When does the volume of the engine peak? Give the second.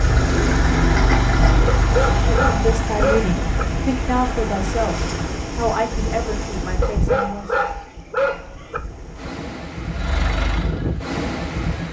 1 s.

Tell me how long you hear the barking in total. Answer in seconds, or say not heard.
4 s.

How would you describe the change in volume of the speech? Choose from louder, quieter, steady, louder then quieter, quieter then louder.
quieter.